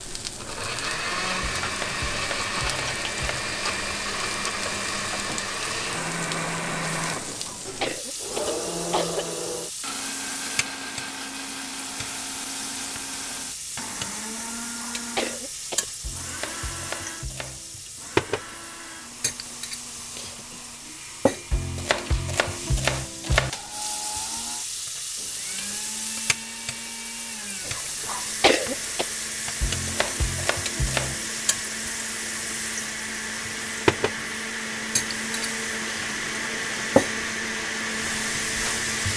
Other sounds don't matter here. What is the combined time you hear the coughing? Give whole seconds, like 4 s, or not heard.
4 s.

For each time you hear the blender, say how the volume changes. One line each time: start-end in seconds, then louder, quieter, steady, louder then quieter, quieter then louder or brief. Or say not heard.
0.2-39.1 quieter then louder.